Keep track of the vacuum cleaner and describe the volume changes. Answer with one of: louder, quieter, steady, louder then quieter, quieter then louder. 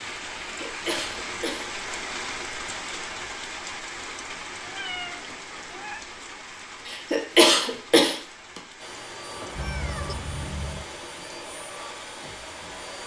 steady.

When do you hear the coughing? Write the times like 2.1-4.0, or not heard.
0.4-2.1, 6.8-8.6.